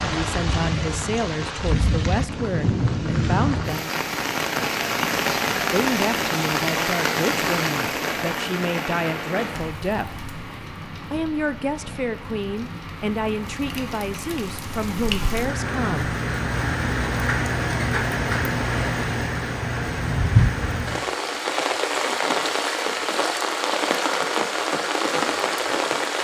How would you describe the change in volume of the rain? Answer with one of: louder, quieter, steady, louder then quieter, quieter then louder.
quieter then louder.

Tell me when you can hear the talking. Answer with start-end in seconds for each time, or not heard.
0.0-3.9, 5.7-10.2, 11.1-16.1.